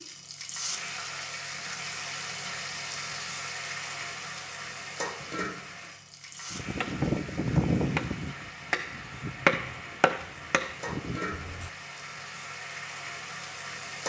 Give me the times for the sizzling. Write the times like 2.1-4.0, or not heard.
0.0-14.0.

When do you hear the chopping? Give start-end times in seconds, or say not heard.
6.5-11.7.